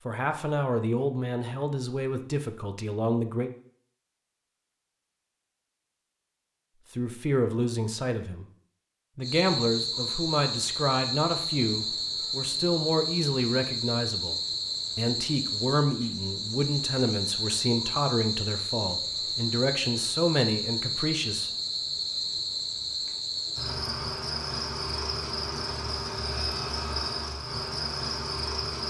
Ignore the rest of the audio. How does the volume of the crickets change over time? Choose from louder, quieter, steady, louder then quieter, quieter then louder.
steady.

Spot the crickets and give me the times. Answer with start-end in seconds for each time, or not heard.
9.2-28.8.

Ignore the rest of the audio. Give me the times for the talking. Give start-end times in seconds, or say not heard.
0.1-3.5, 6.9-8.4, 9.2-14.3, 14.9-21.5.